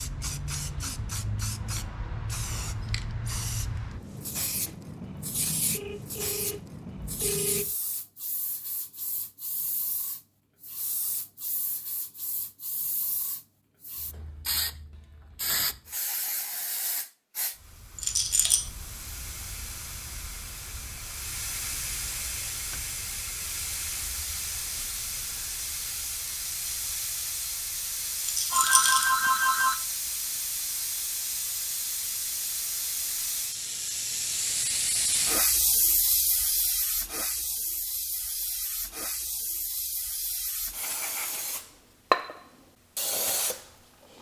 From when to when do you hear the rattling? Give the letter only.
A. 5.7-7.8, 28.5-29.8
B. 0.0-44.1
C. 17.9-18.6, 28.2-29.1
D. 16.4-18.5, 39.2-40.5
C.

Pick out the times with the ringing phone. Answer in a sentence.
The ringing phone can be heard from 5.7 to 7.8 s and from 28.5 to 29.8 s.